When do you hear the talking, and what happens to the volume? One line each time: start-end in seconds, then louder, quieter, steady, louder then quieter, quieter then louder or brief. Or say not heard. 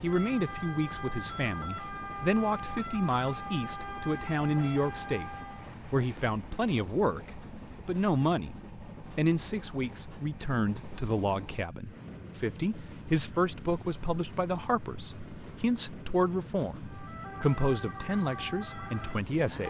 0.0-19.6 steady.